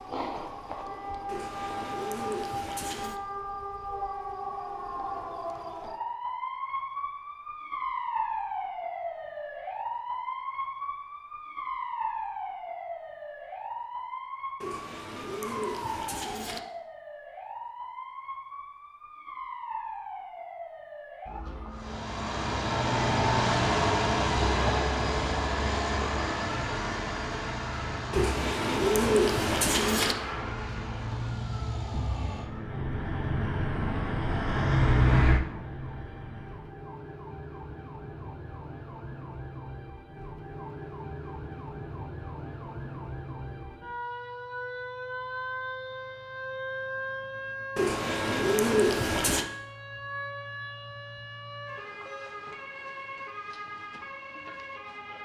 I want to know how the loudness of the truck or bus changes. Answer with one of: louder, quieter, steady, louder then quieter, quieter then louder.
quieter then louder.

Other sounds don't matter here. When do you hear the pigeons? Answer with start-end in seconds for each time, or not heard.
1.2-3.2, 14.6-16.6, 28.1-30.1, 47.8-49.5.